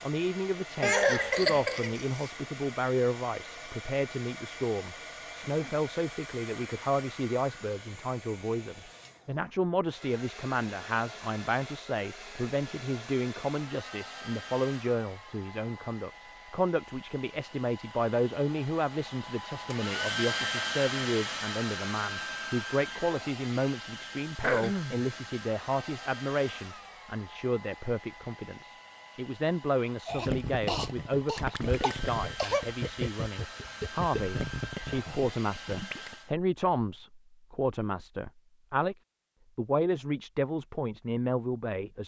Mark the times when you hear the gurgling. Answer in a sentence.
You can hear the gurgling from 30.1 to 36.1 s.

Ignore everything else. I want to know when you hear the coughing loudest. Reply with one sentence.
The volume of the coughing peaks at 1 second.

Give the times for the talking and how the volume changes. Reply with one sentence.
You can hear the talking from 0.0 to 39.0 s, at a steady volume; and briefly from 39.5 to 42.0 s.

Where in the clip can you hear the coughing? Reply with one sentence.
You can hear the coughing from 0.8 to 2.3 s, from 24.4 to 25.1 s and from 30.1 to 32.6 s.